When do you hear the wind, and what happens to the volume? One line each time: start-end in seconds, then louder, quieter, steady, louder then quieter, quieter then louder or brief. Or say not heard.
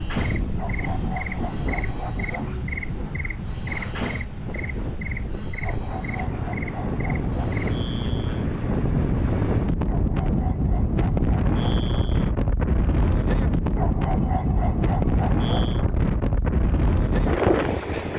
0.0-18.1 louder.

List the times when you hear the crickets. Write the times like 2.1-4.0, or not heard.
0.0-18.1.